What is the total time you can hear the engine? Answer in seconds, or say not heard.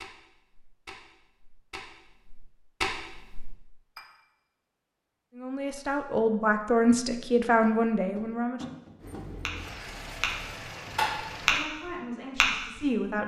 3 s.